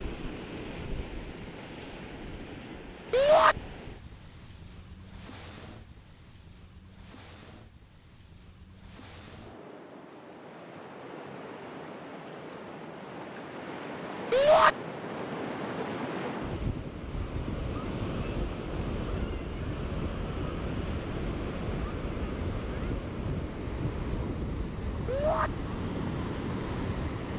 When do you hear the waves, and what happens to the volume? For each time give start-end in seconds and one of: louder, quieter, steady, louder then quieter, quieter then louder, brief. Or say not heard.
0.0-27.3 quieter then louder.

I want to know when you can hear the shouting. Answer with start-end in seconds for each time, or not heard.
3.1-3.5, 14.3-14.8, 25.1-25.5.